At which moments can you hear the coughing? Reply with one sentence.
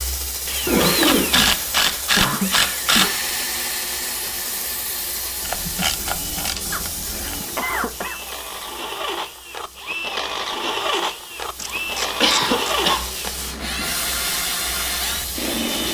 You can hear the coughing from 2.1 to 3.1 s, from 6.7 to 8.2 s and from 12.0 to 13.1 s.